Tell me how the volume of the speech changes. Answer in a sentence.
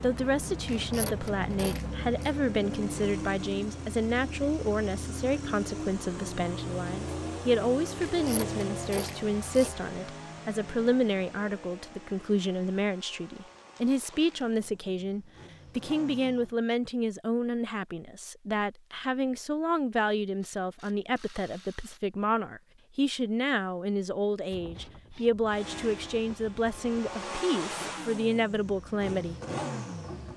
The volume of the speech stays about the same.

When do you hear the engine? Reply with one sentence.
You can hear the engine from 0.0 to 16.6 s and from 25.5 to 30.3 s.